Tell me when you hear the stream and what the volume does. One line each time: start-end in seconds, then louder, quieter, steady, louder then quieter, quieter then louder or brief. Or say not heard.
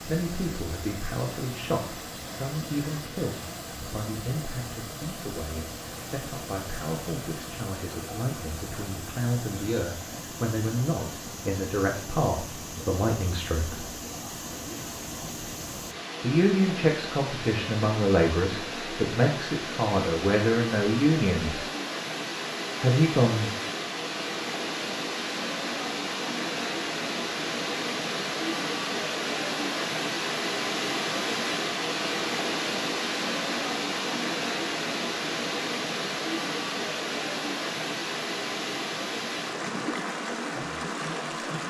0.0-41.6 louder.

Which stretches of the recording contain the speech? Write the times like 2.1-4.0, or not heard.
0.1-13.8, 16.2-21.7, 22.8-23.5.